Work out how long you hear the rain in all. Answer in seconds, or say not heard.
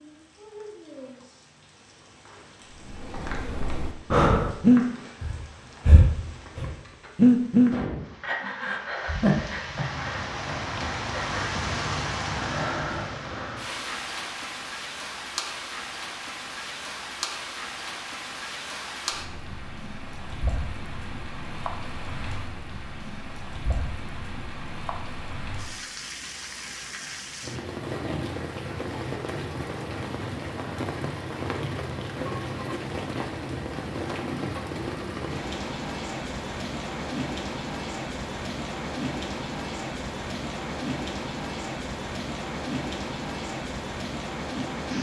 45 s.